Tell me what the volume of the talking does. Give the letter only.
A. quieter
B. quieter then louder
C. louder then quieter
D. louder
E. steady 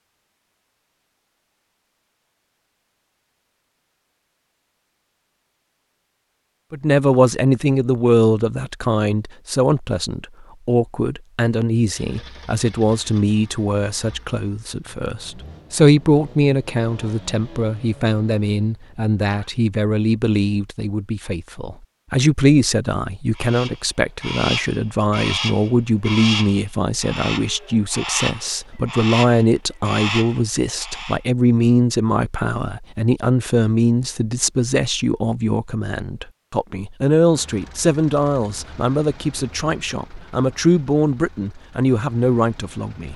E.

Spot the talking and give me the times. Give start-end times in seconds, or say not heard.
6.7-43.1.